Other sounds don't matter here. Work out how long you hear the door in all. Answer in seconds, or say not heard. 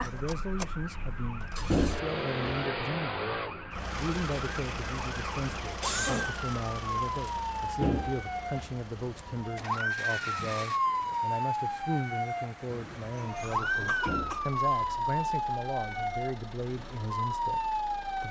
3 s.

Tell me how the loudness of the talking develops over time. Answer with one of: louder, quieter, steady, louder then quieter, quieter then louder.
steady.